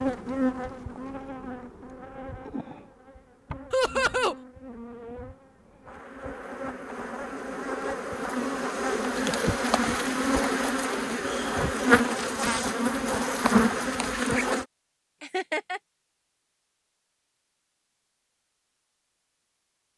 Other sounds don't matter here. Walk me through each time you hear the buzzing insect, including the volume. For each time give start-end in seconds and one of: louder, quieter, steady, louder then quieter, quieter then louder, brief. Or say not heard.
0.0-14.7 quieter then louder.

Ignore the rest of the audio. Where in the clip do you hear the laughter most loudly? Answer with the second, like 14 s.
4 s.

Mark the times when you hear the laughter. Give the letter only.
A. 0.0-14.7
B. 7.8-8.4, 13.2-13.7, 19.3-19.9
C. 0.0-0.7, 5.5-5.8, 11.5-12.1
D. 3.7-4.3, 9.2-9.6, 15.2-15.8
D.